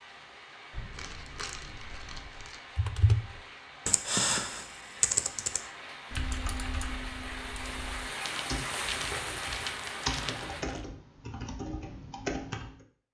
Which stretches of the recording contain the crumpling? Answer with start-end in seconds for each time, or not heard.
0.7-2.6, 8.2-10.8.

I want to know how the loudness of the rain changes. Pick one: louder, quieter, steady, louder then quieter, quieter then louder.
louder.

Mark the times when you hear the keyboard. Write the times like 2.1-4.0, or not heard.
2.8-12.8.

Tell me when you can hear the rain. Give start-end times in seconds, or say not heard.
0.0-10.7.